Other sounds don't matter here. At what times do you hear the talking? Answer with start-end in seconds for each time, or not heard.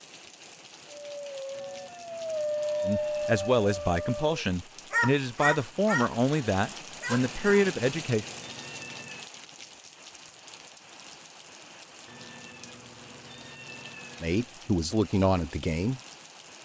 2.9-8.2, 14.2-16.0.